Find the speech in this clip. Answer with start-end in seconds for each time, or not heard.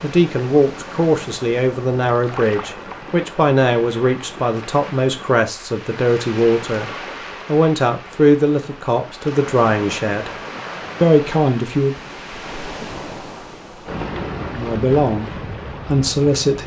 0.0-10.3, 11.0-11.9, 14.5-16.6.